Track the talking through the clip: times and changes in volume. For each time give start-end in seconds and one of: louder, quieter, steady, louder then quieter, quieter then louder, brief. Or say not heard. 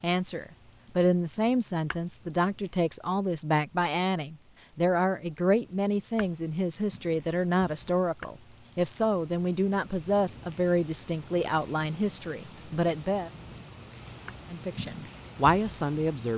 0.0-13.3 steady
14.5-16.3 brief.